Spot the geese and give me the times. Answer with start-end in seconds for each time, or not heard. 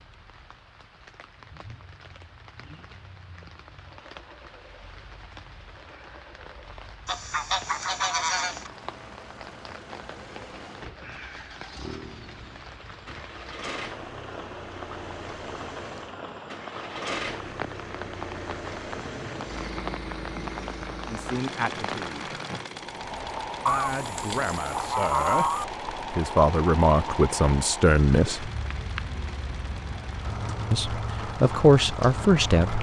7.0-8.7, 23.6-25.6.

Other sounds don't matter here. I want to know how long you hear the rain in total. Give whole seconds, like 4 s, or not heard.
33 s.